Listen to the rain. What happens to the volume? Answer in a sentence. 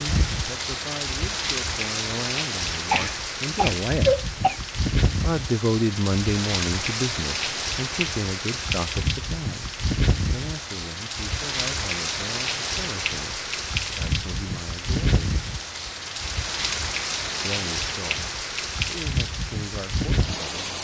The volume of the rain stays about the same.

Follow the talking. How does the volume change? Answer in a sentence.
The volume of the talking goes up, then down.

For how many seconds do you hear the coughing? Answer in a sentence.
You can hear the coughing for 2 seconds altogether.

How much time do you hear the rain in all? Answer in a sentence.
The rain can be heard for 21 seconds in total.